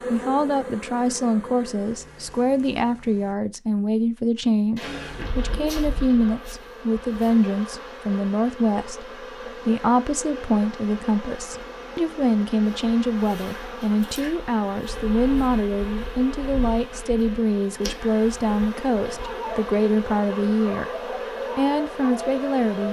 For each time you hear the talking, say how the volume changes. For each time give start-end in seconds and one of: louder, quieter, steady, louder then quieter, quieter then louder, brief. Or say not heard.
0.1-22.8 steady.